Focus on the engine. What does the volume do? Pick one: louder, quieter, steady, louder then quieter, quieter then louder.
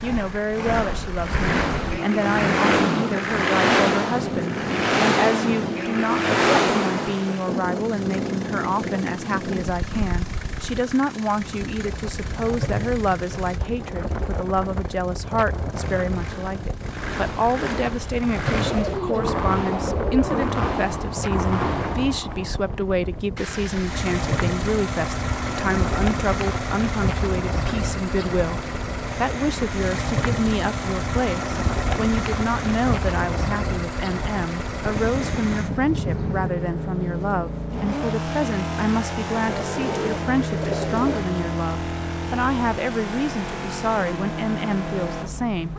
quieter then louder.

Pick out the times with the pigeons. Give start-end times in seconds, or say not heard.
18.4-20.4, 39.4-41.2.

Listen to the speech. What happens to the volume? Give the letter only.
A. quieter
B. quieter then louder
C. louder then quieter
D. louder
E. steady
E.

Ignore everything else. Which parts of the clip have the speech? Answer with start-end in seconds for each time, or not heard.
0.0-45.7.